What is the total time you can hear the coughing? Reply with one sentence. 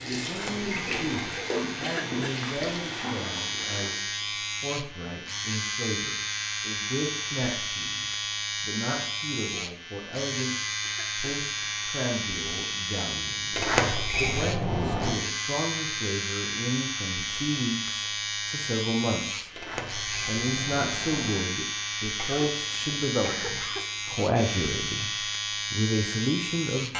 The coughing can be heard for 3 seconds in total.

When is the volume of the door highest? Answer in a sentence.
The volume of the door peaks at 14 seconds.